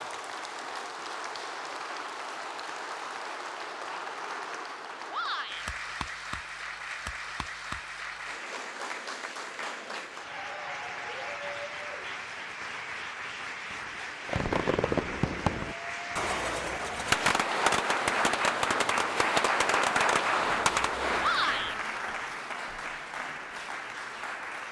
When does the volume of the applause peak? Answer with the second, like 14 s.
20 s.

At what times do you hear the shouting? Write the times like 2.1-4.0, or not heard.
5.1-5.7, 21.1-21.8.